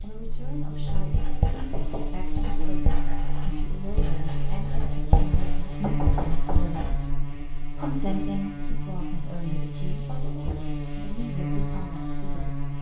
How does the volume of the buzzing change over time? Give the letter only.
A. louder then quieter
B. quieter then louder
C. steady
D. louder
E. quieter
C.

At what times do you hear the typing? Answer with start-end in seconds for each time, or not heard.
not heard.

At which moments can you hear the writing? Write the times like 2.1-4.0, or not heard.
0.8-7.2.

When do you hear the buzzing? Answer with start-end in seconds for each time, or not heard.
0.0-12.7.